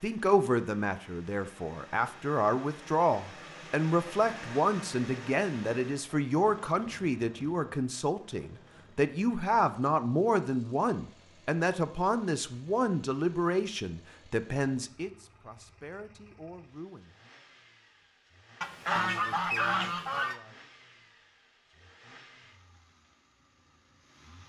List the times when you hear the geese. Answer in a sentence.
The geese can be heard from 18.6 to 20.4 s.